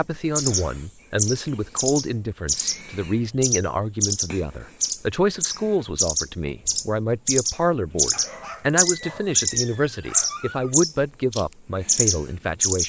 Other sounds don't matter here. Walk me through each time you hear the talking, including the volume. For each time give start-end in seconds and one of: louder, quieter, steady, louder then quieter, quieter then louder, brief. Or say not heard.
0.0-12.8 steady.